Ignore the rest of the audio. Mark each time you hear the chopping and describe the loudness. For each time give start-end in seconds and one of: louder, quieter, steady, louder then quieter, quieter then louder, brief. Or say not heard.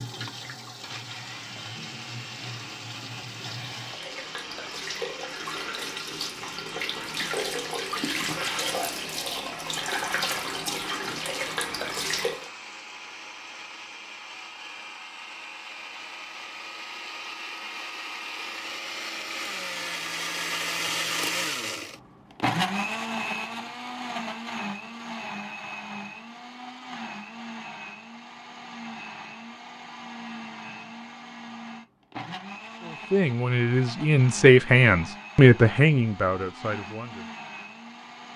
not heard.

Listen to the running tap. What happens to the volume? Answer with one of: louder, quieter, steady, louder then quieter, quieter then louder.
louder.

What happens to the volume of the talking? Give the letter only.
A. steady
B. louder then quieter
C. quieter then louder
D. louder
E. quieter
B.